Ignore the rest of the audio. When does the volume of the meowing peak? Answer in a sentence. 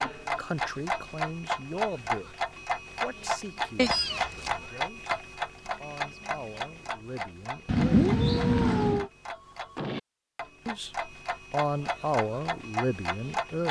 The volume of the meowing peaks at 8 seconds.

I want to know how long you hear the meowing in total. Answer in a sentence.
You can hear the meowing for 2 seconds altogether.